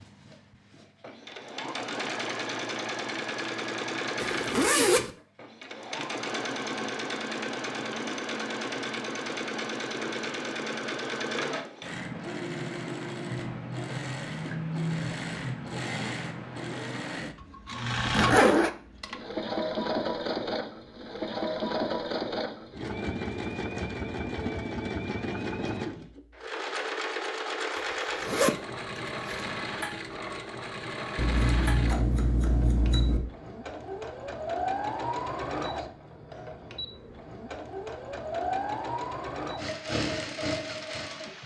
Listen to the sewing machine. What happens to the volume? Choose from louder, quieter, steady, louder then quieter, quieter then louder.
steady.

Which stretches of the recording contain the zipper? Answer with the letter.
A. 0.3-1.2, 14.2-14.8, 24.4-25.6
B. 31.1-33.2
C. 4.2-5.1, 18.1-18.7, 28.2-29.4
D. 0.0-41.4
C.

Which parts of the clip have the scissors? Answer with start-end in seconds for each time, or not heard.
31.1-33.2.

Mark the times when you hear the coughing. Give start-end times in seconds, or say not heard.
not heard.